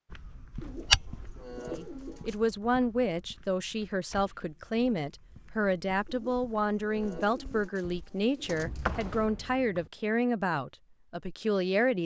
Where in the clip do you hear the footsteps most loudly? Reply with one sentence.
The volume of the footsteps peaks at 1 second.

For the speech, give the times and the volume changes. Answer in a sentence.
The speech can be heard from 1.7 to 12.0 s, at a steady volume.